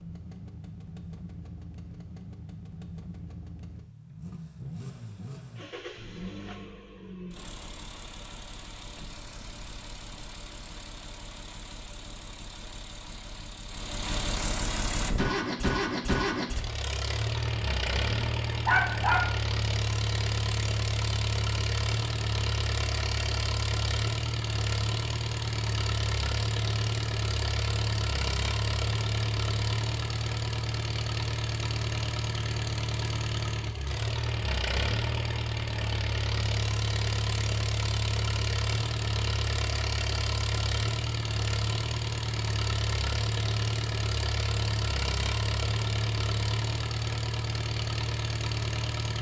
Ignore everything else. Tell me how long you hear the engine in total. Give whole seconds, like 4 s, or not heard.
49 s.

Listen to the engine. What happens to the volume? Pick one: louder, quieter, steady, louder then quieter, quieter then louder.
louder.